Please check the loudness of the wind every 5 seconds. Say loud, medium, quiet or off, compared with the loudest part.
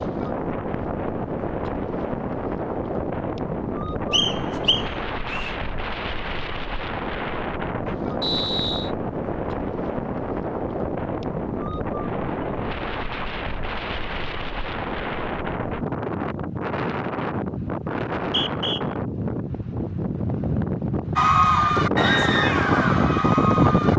medium, medium, medium, medium, loud.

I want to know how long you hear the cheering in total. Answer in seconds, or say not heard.
3 s.